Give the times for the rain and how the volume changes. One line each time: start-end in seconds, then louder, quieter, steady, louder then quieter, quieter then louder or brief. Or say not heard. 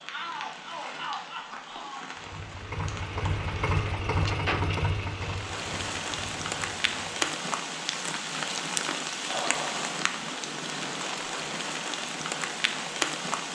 0.0-13.5 louder.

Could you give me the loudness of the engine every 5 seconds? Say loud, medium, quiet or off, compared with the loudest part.
loud, medium, off.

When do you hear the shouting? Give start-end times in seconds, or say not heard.
0.1-2.1.